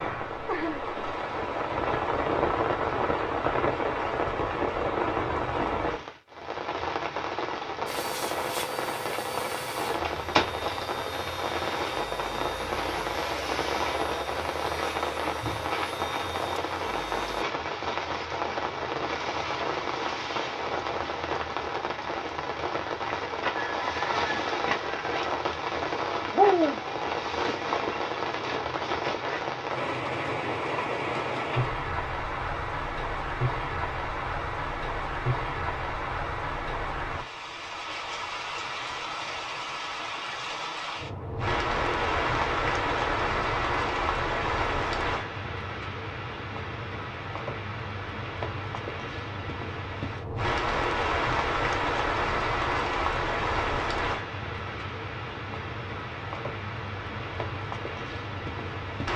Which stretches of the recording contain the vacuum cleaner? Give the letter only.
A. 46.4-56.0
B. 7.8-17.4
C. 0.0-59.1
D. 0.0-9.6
B.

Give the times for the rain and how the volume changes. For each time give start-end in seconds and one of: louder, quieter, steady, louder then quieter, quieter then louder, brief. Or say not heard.
0.0-59.1 steady.